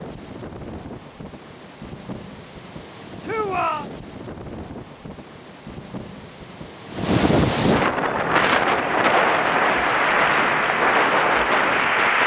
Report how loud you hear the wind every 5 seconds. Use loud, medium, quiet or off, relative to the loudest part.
quiet, loud, loud.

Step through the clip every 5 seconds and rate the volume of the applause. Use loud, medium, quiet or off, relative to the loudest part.
off, medium, loud.